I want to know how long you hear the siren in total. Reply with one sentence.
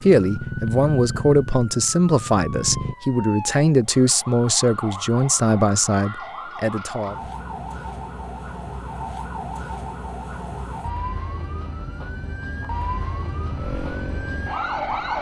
The siren can be heard for 15 seconds in total.